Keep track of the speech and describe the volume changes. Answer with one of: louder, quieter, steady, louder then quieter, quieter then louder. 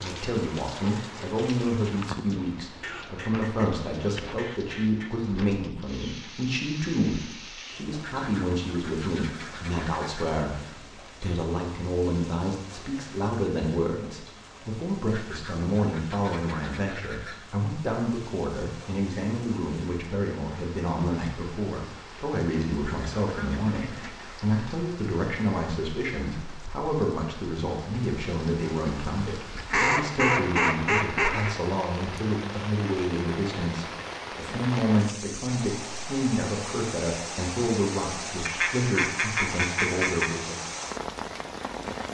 steady.